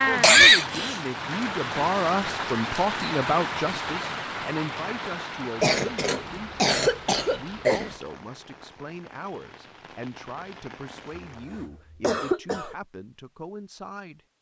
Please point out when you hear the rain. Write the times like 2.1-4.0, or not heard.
0.0-11.5.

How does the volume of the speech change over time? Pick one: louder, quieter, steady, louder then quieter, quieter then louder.
quieter.